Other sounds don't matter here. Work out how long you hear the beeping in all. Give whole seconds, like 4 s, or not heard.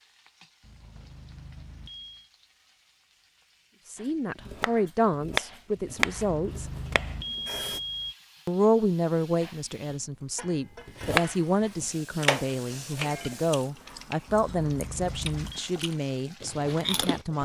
5 s.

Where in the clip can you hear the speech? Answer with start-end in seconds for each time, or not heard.
3.9-6.7, 8.4-17.4.